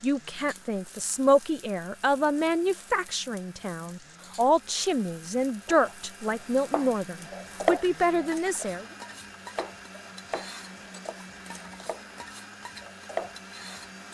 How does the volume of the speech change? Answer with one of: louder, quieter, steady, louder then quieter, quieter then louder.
steady.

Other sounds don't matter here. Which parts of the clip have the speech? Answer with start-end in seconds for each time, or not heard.
0.0-8.8.